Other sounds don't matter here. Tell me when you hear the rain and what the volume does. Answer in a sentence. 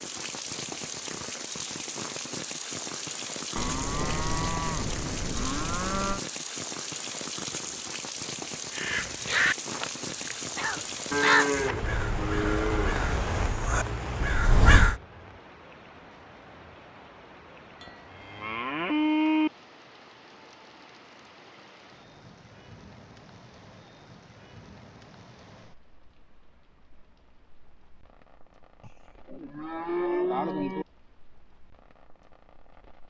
You can hear the rain from 0.0 to 33.0 s, getting quieter.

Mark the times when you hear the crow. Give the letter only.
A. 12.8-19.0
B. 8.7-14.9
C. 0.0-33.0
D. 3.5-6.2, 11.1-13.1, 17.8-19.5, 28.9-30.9
B.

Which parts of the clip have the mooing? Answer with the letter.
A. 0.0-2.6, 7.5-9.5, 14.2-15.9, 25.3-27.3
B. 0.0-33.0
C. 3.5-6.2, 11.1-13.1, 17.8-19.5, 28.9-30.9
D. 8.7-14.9
C.